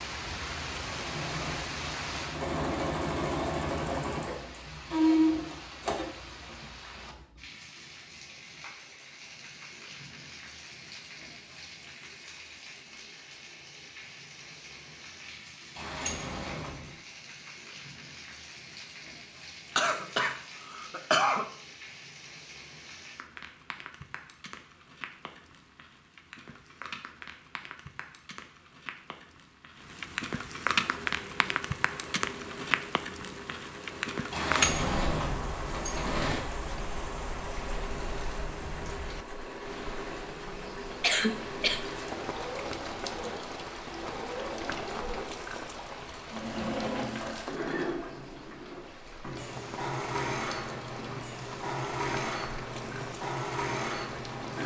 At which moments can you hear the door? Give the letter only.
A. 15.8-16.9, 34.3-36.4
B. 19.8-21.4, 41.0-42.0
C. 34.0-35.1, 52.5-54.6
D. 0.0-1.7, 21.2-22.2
A.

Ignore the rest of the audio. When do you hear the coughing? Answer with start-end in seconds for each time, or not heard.
19.8-21.4, 41.0-42.0.